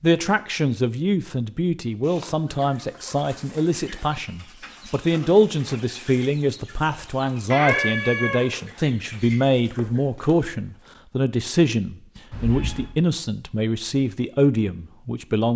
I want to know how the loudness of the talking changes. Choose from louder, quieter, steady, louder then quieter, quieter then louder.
steady.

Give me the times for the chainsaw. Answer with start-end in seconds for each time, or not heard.
not heard.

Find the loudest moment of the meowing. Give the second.
8 s.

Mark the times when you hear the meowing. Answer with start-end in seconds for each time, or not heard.
2.0-2.8, 7.5-8.4, 12.3-12.9.